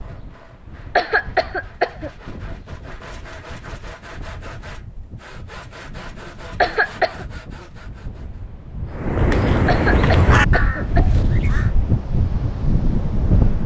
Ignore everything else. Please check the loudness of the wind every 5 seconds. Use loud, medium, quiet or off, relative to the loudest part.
quiet, quiet, loud.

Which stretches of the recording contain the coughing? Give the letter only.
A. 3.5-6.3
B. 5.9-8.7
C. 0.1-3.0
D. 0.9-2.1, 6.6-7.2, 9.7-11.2
D.